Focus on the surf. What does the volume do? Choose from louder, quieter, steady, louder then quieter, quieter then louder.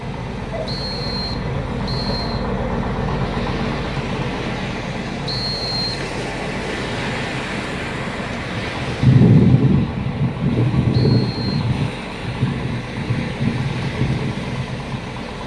louder then quieter.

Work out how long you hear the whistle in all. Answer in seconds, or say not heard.
3 s.